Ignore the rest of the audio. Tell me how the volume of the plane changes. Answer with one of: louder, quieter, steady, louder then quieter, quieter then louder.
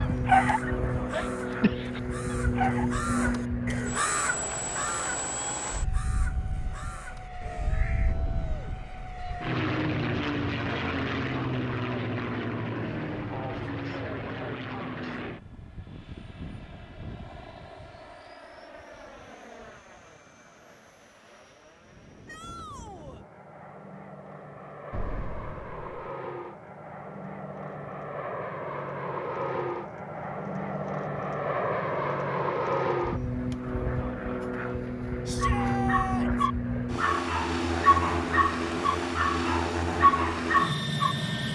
quieter then louder.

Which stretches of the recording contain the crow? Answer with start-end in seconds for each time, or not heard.
0.1-8.2.